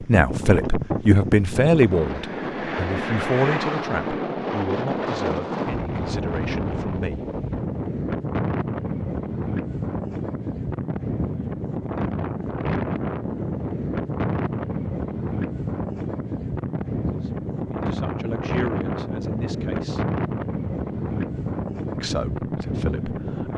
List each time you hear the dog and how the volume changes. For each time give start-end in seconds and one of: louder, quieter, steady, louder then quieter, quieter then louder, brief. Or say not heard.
not heard.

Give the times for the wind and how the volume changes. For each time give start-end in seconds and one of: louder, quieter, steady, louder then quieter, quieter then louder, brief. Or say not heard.
0.0-23.5 steady.